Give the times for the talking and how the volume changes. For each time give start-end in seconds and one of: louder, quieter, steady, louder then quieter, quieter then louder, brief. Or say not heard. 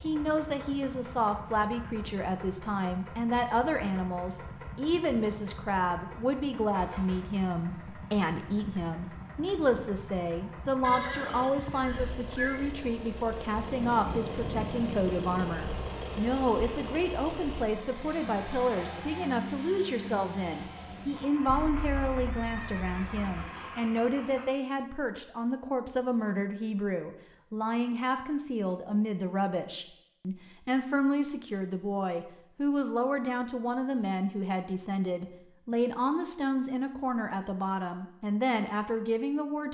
0.0-39.6 steady.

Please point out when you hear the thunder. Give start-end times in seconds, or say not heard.
13.6-16.1.